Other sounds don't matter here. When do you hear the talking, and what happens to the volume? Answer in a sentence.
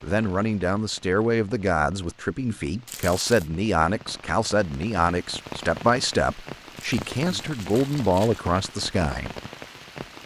The talking can be heard from 0.0 to 9.3 s, at a steady volume.